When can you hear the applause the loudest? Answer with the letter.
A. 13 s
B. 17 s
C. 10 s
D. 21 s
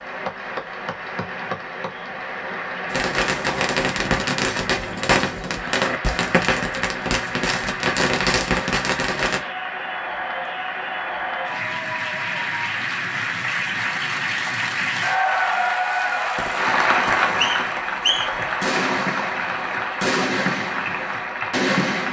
B.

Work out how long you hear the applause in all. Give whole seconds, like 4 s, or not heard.
22 s.